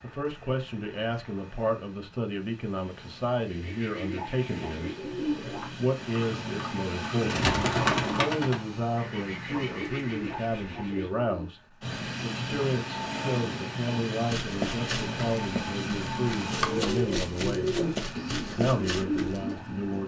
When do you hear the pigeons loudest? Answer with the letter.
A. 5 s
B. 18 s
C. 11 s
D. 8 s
D.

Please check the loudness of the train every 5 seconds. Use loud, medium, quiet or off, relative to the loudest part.
quiet, loud, loud, loud.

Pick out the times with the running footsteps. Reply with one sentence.
You can hear the running footsteps from 14.2 to 19.4 s.